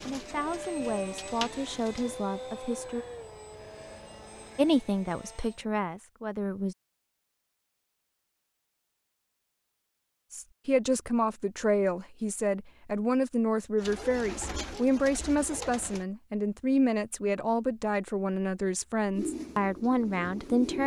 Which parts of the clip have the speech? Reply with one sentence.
The speech can be heard from 0.0 to 3.0 s, from 4.5 to 6.8 s and from 10.3 to 20.8 s.